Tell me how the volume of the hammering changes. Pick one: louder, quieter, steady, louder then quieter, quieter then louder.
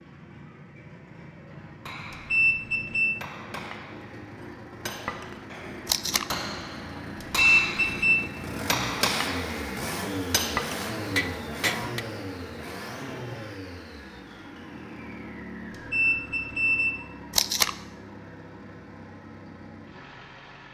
louder.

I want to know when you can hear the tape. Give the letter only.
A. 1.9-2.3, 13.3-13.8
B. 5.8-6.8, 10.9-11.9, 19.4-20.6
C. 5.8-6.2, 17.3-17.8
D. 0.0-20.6
C.